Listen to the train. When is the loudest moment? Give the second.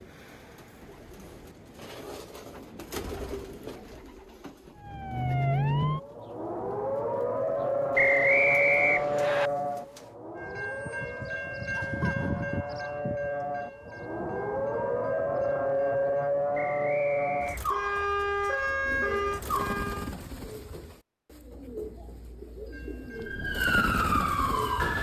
12 s.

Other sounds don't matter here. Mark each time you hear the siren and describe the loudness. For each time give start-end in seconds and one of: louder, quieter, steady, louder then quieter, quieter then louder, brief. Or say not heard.
4.8-20.1 quieter then louder
23.1-24.9 brief.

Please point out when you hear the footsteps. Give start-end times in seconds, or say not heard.
not heard.